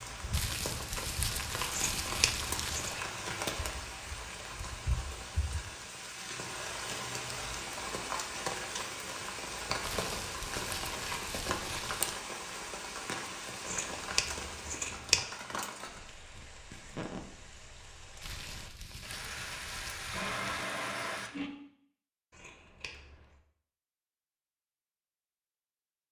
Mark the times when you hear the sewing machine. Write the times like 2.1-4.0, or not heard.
19.4-21.5.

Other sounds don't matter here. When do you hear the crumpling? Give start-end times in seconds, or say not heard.
0.3-3.0, 9.8-12.1, 18.2-20.7.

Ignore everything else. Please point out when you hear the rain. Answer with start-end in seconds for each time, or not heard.
0.0-21.3.